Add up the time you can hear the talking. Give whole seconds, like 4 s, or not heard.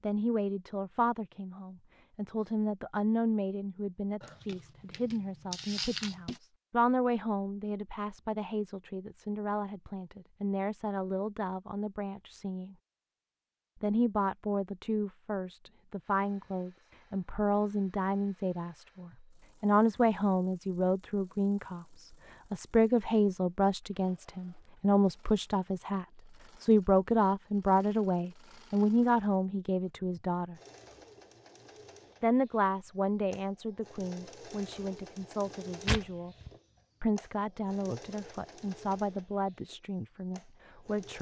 38 s.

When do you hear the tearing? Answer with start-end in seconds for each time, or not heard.
4.2-6.4, 35.9-36.5.